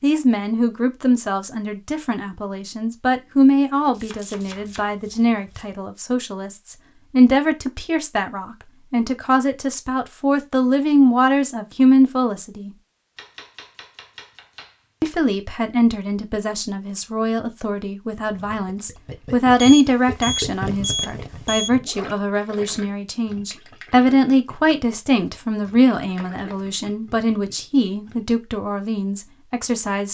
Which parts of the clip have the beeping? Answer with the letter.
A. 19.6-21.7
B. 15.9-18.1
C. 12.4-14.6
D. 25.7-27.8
A.